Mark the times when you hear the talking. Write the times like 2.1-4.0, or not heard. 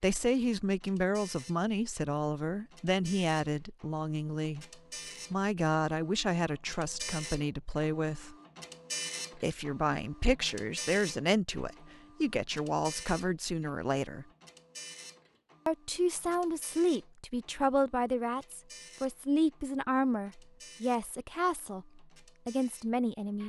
0.0-4.7, 5.3-8.3, 9.3-14.2, 15.7-23.4.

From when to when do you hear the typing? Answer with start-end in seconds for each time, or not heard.
not heard.